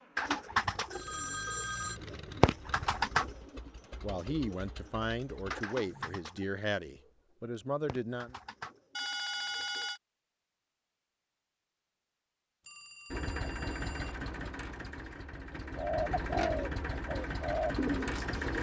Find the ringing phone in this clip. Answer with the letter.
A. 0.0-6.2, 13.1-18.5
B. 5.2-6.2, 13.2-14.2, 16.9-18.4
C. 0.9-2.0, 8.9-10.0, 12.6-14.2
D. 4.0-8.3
C.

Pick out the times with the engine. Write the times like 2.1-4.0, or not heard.
0.0-6.2, 13.1-18.5.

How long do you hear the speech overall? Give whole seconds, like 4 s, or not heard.
4 s.